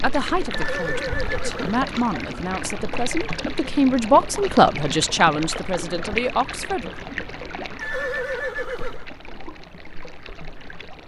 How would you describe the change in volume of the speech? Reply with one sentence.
The volume of the speech goes up, then down.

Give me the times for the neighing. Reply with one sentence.
You can hear the neighing from 0.5 to 1.8 s and from 7.8 to 9.1 s.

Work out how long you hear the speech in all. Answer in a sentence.
You can hear the speech for 7 seconds altogether.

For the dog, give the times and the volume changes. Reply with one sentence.
The dog can't be heard in this clip.